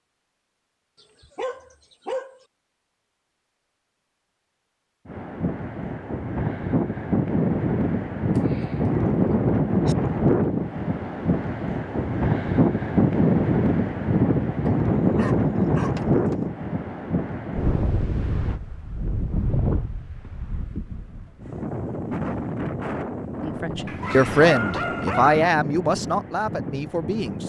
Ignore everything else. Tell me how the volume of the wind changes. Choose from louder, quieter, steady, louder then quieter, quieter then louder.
quieter.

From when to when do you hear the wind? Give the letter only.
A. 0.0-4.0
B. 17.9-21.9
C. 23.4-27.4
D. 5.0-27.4
D.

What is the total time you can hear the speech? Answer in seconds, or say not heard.
4 s.